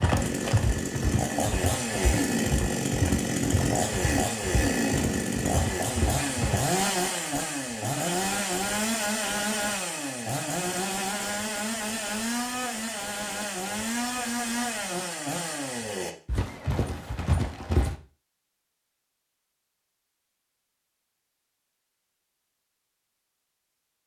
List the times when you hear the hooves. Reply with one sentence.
You can hear the hooves from 0.0 to 6.6 s and from 16.2 to 17.9 s.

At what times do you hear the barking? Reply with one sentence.
The barking can't be heard in this clip.